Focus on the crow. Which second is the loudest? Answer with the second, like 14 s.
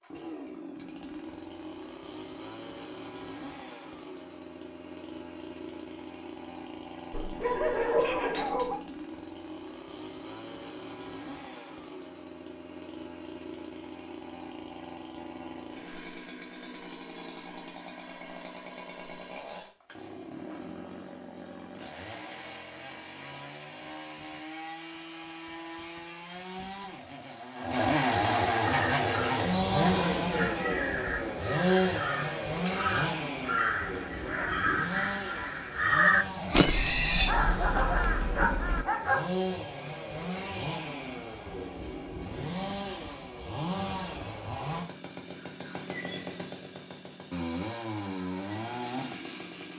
36 s.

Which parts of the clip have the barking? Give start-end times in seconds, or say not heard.
7.1-8.8, 37.2-39.2.